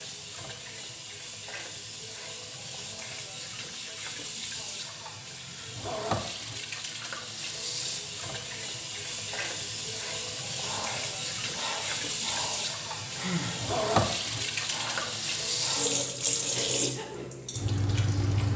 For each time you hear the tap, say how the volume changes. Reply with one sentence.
You can hear the tap from 0.0 to 18.5 s, getting louder.